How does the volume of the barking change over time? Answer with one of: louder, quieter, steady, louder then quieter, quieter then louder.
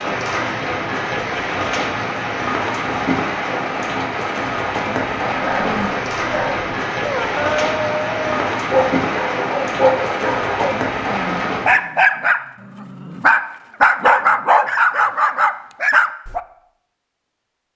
louder.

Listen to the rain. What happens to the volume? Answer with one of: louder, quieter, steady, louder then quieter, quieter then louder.
steady.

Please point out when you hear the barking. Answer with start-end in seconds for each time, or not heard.
5.4-16.4.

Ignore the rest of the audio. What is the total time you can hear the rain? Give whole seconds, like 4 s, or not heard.
12 s.